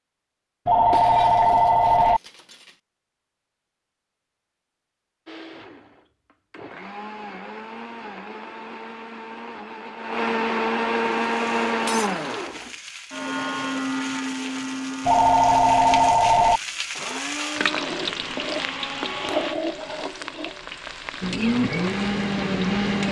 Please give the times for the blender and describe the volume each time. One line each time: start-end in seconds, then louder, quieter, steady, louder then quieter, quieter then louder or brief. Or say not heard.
5.2-19.6 louder then quieter
21.2-23.0 brief.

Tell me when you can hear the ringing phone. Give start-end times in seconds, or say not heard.
0.7-2.2, 15.1-16.6.